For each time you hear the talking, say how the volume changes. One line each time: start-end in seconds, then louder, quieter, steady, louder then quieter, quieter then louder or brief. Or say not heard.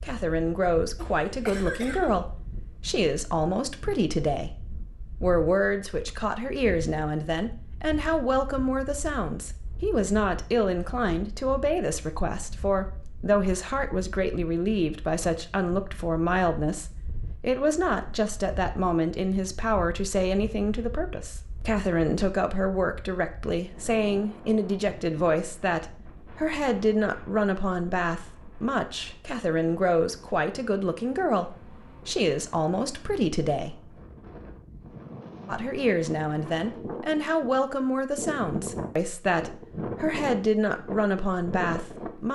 0.0-4.5 steady
5.2-33.8 steady
35.5-42.3 steady.